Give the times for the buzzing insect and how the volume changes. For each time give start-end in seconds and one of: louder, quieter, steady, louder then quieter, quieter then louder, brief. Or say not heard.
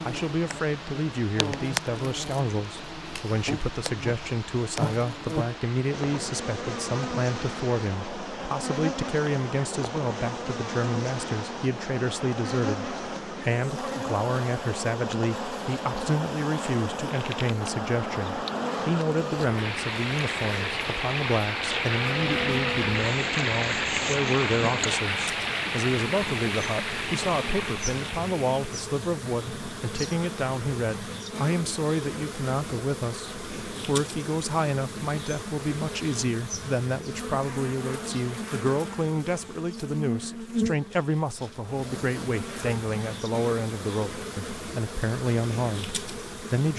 0.0-46.7 steady.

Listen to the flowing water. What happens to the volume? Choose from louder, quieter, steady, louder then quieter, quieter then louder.
louder.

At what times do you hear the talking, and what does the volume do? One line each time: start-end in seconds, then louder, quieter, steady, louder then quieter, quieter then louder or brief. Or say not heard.
0.1-46.7 steady.